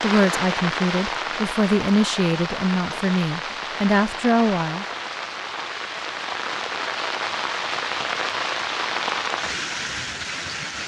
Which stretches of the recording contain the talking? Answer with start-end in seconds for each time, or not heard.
0.0-4.8.